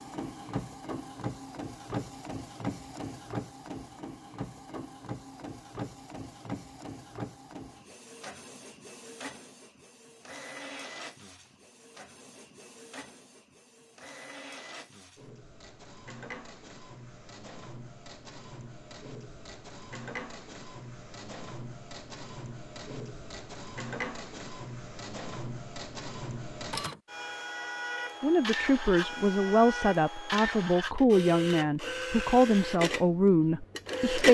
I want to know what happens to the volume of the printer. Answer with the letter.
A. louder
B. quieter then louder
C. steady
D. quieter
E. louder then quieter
B.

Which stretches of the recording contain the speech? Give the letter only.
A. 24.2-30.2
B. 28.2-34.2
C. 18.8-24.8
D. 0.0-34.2
B.